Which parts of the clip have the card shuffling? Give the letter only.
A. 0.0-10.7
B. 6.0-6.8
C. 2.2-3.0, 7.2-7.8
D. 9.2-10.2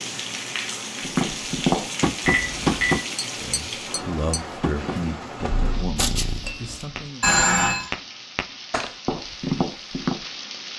B.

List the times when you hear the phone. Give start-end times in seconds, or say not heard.
2.2-3.0, 7.2-7.8.